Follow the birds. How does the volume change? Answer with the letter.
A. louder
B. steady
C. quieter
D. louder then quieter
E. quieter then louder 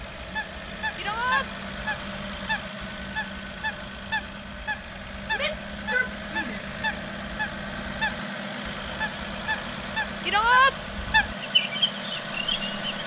A.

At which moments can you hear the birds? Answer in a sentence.
You can hear the birds from 0.0 to 12.8 s.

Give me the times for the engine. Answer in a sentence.
The engine can be heard from 0.0 to 13.0 s.